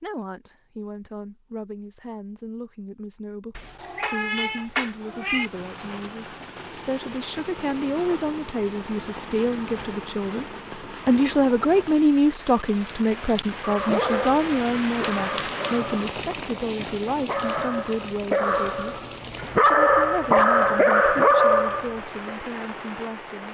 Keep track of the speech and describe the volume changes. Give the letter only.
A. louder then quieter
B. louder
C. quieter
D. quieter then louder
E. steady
A.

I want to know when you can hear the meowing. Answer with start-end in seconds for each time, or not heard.
3.5-5.5.